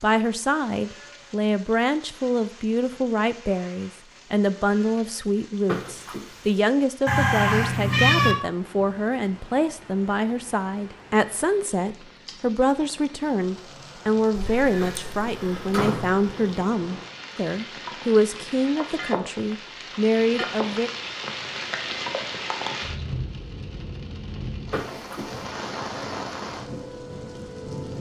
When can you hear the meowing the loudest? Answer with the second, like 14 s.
8 s.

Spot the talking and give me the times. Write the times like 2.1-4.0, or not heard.
0.0-20.9.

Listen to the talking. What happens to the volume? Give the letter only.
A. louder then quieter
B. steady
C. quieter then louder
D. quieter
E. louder
B.